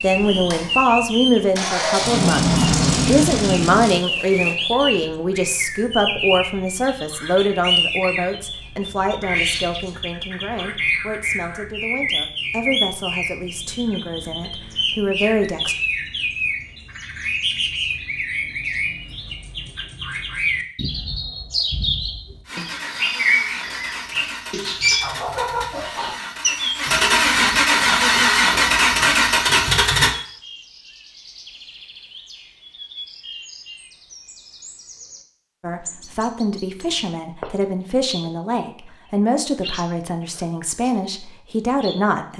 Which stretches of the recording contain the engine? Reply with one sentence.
You can hear the engine from 0.0 to 4.5 s and from 22.4 to 30.1 s.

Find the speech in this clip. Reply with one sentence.
The speech can be heard from 0.0 to 15.8 s and from 35.6 to 42.3 s.